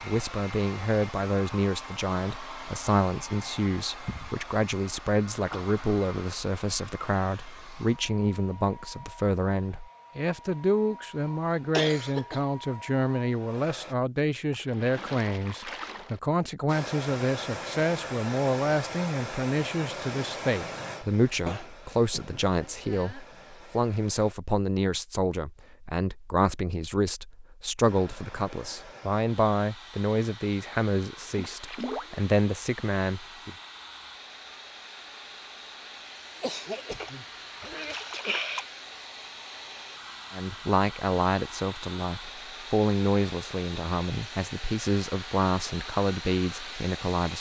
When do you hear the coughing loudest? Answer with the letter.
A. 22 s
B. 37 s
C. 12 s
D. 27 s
C.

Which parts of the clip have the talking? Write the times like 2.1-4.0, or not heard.
0.0-33.5, 40.3-47.3.